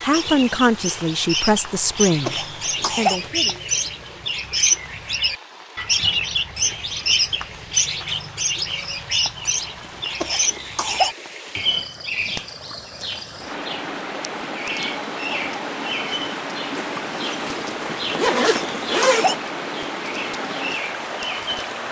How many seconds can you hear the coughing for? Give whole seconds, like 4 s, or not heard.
3 s.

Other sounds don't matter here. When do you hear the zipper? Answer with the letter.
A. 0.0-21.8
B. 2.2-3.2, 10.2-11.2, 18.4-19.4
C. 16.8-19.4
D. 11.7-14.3
C.